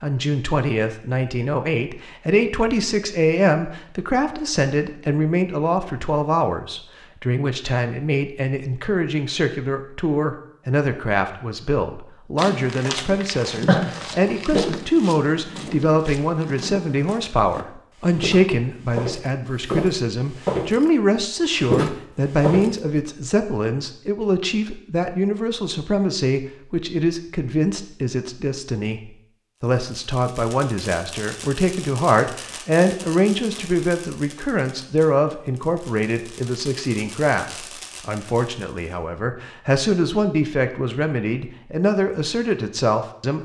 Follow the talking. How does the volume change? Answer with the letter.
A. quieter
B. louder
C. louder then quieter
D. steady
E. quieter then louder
D.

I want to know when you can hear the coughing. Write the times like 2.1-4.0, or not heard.
13.7-14.7.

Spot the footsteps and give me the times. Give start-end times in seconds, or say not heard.
12.3-22.8.